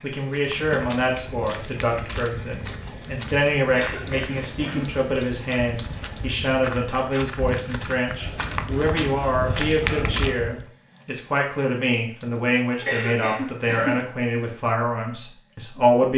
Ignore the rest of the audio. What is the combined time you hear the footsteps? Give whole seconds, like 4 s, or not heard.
10 s.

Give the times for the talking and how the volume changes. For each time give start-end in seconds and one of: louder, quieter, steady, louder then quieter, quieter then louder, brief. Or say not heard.
0.0-16.1 steady.